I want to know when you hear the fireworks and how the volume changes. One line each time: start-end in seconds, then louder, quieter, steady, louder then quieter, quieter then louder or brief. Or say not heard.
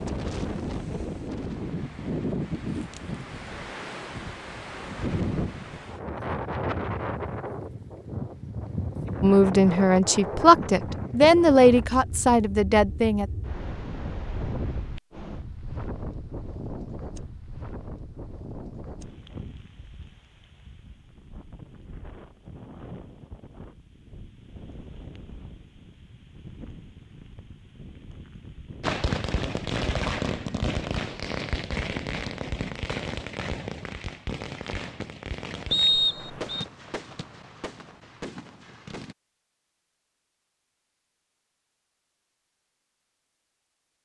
28.8-39.1 quieter.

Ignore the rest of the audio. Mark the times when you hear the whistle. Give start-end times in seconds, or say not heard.
35.7-36.6.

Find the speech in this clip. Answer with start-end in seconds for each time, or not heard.
9.2-13.2.